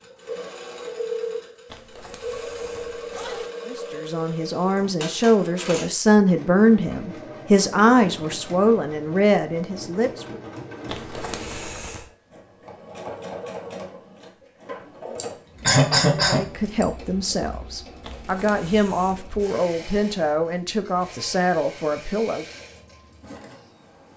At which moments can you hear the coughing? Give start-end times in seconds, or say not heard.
15.2-16.9.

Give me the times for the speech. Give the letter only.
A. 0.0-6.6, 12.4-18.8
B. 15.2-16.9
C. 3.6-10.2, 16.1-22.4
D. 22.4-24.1
C.